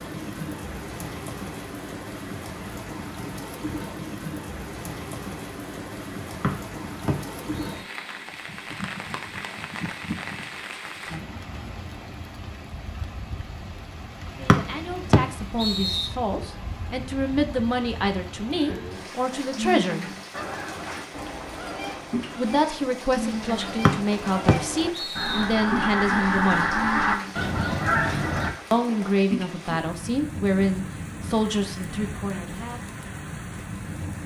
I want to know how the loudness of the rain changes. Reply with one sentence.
The loudness of the rain stays about the same.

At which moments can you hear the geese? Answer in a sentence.
You can hear the geese from 20.3 to 28.5 s.